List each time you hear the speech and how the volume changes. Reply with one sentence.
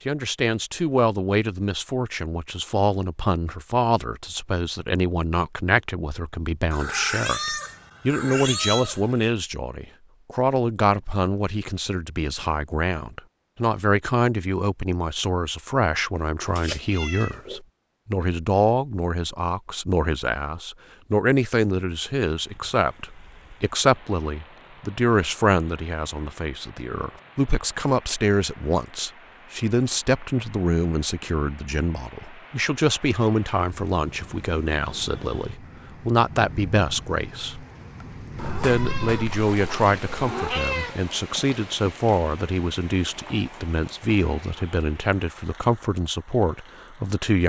The speech can be heard from 0.1 to 47.4 s, at a steady volume.